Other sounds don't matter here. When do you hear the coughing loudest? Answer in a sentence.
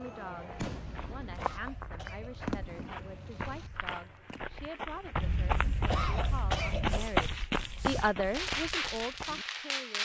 The volume of the coughing peaks at 6 seconds.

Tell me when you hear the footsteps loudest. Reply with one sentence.
The volume of the footsteps peaks at 7 seconds.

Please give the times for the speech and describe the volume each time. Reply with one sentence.
You can hear the speech from 0.0 to 10.0 s, getting louder.